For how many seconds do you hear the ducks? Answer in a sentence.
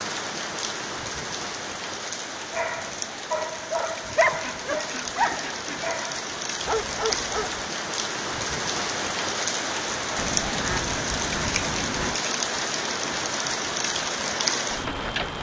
You can hear the ducks for 3 seconds altogether.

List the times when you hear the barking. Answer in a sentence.
The barking can be heard from 2.5 to 7.7 s.